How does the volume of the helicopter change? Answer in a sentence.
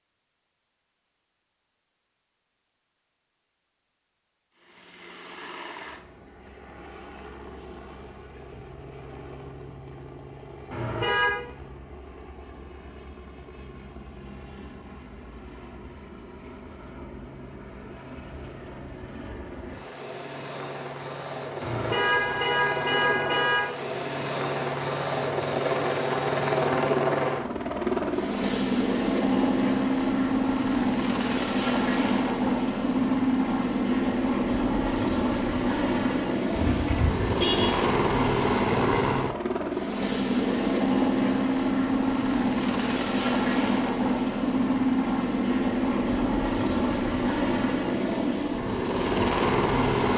The volume of the helicopter goes up.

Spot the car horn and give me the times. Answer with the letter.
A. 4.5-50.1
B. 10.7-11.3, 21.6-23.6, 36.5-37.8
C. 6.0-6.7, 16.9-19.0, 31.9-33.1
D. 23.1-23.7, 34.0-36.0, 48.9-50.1
B.